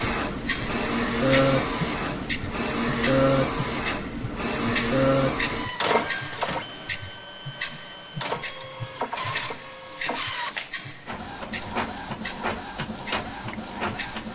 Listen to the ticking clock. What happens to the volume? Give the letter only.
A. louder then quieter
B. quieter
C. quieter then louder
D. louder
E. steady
B.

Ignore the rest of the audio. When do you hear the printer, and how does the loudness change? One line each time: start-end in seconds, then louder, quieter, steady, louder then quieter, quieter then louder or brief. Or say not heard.
0.0-14.3 quieter.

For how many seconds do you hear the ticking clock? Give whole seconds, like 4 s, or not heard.
14 s.